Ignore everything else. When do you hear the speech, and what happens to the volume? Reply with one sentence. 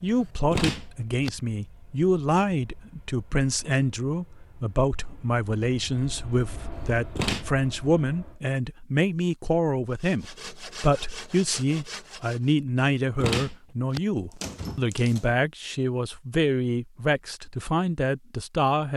You can hear the speech from 0.0 to 18.9 s, at a steady volume.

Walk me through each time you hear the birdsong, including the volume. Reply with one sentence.
You can't hear the birdsong here.